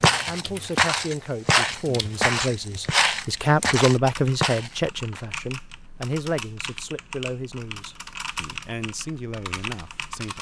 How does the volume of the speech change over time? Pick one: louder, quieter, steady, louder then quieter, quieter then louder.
louder then quieter.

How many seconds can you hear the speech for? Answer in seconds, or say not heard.
10 s.